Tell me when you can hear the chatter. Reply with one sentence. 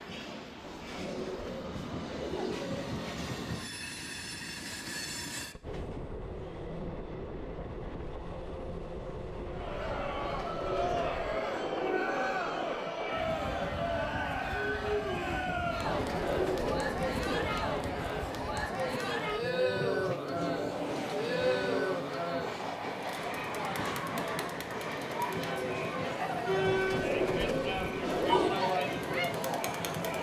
You can hear the chatter from 9.5 to 30.1 s.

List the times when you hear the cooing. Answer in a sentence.
The cooing can be heard from 0.6 to 3.3 s, from 10.1 to 12.8 s, from 15.8 to 17.5 s and from 26.6 to 28.6 s.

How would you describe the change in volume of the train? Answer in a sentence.
The loudness of the train stays about the same.